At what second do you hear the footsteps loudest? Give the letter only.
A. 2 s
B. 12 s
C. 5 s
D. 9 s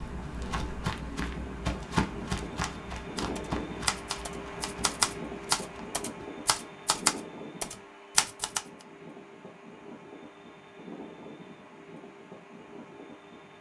A.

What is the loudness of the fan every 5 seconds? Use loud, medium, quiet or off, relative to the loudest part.
loud, loud, medium.